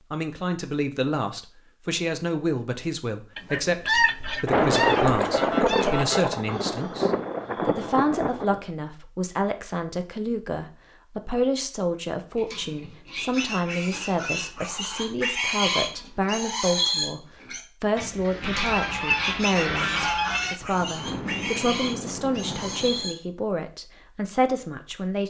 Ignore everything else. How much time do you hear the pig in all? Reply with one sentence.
The pig can be heard for 11 seconds in total.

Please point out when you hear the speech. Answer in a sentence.
You can hear the speech from 0.1 to 25.2 s.